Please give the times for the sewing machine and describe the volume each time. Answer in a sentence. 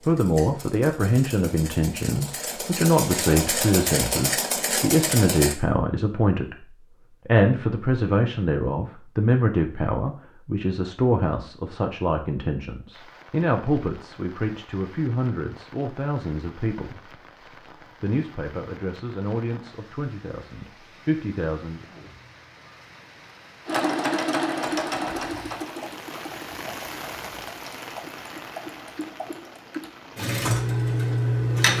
The sewing machine can be heard from 0.0 to 5.5 s, getting louder; and from 23.6 to 31.7 s, getting quieter then louder.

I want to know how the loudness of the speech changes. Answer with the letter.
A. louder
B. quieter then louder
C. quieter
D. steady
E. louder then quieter
C.